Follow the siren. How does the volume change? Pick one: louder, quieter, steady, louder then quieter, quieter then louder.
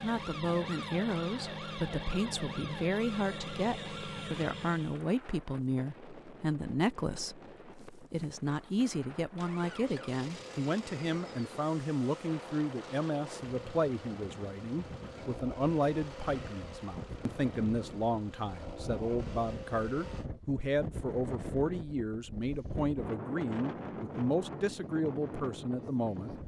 steady.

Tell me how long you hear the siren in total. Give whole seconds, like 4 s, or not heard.
5 s.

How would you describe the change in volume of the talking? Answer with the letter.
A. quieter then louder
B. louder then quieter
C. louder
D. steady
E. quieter
D.